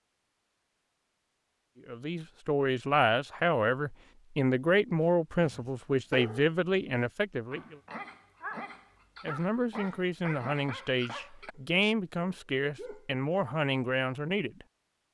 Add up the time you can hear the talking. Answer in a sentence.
The talking can be heard for 11 seconds in total.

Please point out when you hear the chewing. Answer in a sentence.
The chewing can't be heard in this clip.